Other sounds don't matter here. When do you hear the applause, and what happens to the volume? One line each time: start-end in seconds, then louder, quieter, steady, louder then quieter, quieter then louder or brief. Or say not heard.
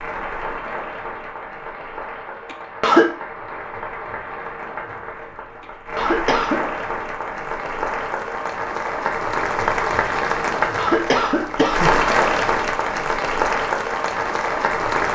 0.0-15.1 louder.